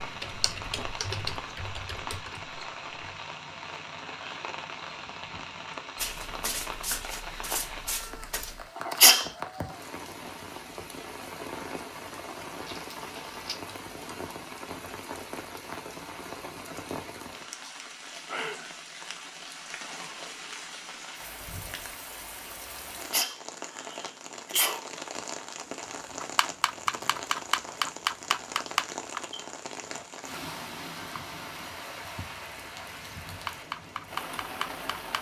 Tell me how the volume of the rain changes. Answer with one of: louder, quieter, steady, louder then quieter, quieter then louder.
steady.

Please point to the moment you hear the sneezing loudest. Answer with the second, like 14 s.
9 s.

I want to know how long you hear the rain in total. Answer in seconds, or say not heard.
35 s.